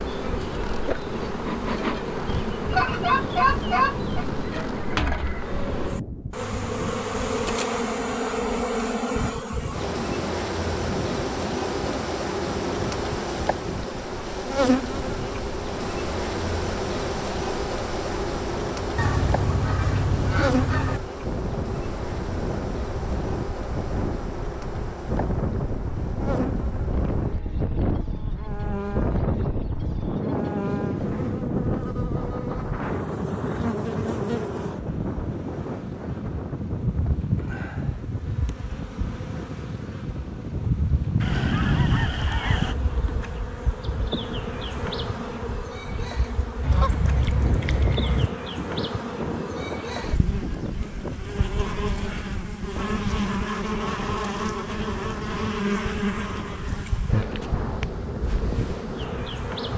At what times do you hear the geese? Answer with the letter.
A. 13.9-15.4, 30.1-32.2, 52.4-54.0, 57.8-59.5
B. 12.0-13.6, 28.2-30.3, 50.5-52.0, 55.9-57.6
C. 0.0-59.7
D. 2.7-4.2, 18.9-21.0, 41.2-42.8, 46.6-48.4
D.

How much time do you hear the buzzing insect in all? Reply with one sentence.
You can hear the buzzing insect for 60 seconds altogether.